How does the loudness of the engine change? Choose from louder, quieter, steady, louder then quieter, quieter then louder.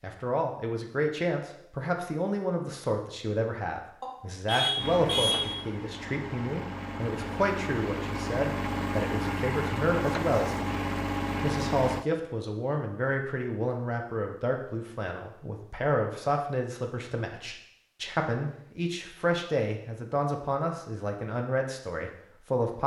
louder.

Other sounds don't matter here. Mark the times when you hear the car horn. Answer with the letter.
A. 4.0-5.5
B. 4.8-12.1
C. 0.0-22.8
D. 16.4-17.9
A.